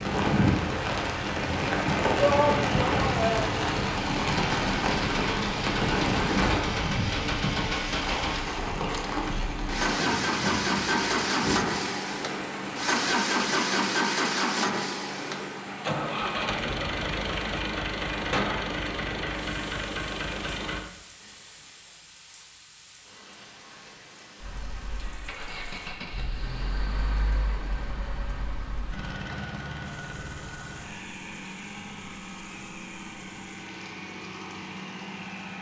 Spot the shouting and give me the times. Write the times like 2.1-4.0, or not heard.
2.1-3.6.